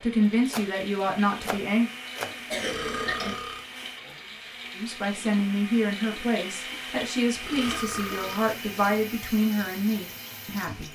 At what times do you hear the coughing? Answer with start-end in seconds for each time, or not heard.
2.5-3.4, 7.5-8.3.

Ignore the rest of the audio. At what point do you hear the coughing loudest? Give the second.
3 s.